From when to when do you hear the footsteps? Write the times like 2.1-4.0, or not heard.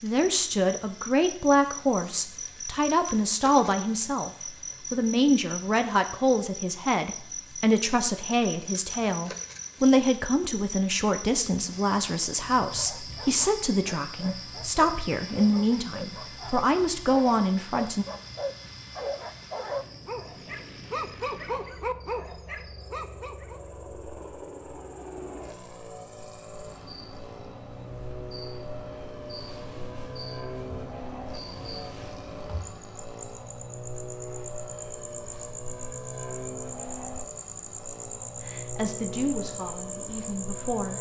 not heard.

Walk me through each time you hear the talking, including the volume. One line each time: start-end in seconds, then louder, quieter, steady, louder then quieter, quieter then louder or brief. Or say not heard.
0.0-18.1 steady
38.5-40.9 brief.